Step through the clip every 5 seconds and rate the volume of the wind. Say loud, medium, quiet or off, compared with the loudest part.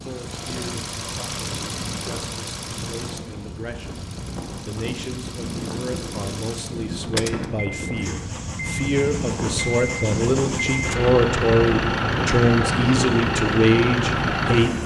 medium, loud, loud.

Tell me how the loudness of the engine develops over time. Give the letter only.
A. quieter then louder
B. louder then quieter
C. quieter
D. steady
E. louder
A.